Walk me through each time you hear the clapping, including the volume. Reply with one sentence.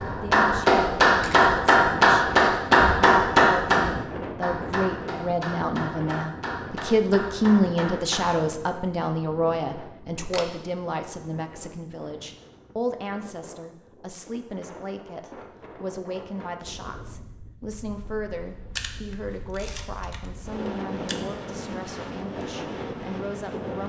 The clapping can be heard from 0.0 to 8.4 s, getting quieter.